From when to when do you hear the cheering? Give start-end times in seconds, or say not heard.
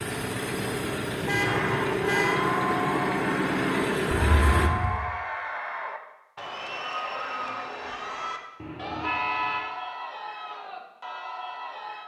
1.4-12.0.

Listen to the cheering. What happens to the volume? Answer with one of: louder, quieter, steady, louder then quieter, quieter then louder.
quieter.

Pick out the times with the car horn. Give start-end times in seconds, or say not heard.
1.2-2.4, 4.1-5.0, 8.6-9.7.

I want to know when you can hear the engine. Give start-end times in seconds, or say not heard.
0.0-4.7.